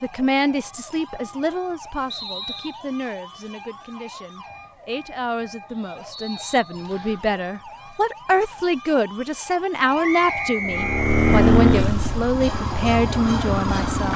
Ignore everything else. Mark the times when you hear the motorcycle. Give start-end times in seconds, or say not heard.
10.6-14.1.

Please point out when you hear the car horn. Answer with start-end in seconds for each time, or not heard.
not heard.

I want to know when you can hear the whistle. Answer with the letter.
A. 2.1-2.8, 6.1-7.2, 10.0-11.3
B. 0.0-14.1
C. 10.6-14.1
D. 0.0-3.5
A.